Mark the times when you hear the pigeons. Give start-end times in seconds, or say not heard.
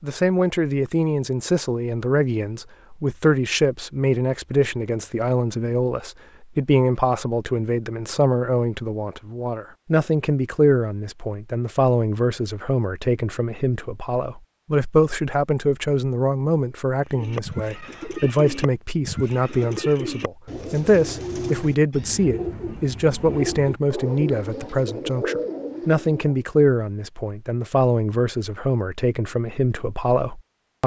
17.1-26.4.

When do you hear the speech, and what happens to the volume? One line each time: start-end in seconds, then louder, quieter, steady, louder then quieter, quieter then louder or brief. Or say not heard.
0.0-30.8 steady.